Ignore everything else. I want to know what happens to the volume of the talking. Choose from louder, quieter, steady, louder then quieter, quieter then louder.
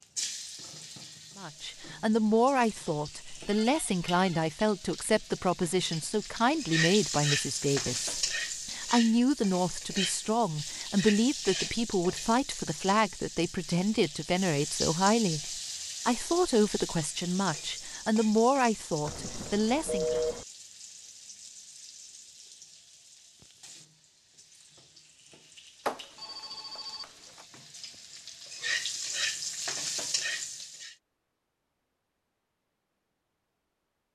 steady.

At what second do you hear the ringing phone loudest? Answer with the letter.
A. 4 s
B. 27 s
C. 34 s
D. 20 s
D.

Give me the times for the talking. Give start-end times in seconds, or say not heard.
1.4-20.2.